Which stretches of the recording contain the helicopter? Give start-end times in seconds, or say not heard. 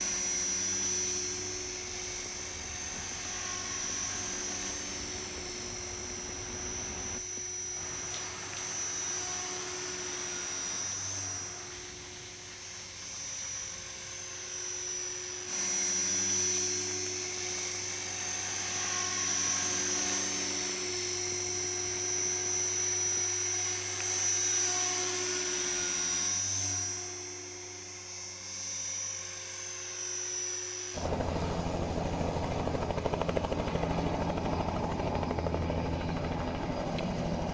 0.0-37.5.